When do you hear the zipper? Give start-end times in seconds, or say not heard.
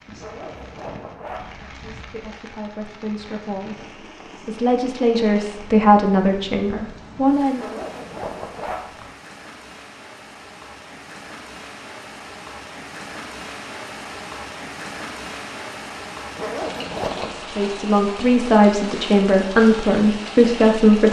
0.1-1.7, 7.5-9.2, 16.4-17.4.